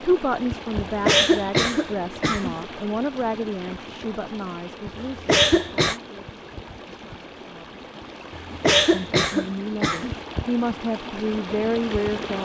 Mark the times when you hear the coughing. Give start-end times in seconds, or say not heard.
0.8-2.5, 5.0-6.0, 8.3-10.2.